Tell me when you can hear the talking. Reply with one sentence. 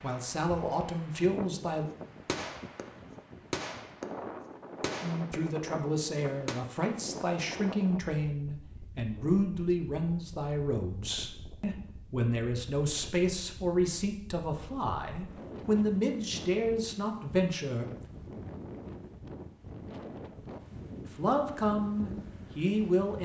The talking can be heard from 0.0 to 1.9 s, from 5.0 to 17.9 s and from 21.1 to 23.2 s.